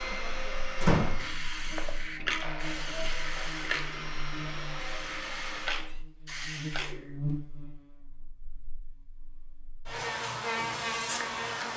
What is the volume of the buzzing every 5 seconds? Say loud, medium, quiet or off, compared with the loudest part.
quiet, medium, loud.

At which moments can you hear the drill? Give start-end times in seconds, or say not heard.
0.0-6.0.